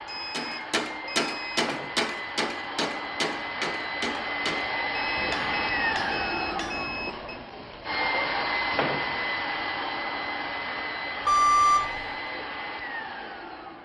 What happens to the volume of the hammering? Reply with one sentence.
The volume of the hammering goes down.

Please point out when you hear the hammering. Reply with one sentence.
You can hear the hammering from 0.3 to 7.2 s.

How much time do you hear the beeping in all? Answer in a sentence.
You can hear the beeping for 5 seconds altogether.